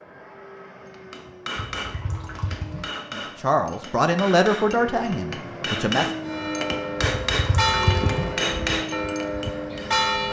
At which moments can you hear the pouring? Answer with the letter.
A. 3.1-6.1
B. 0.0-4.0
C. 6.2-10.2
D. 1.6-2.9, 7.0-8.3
D.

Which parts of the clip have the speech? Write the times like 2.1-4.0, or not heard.
3.1-6.1.